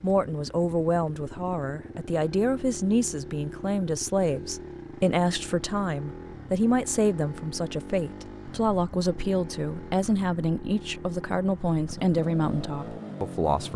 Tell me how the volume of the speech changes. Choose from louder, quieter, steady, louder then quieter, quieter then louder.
steady.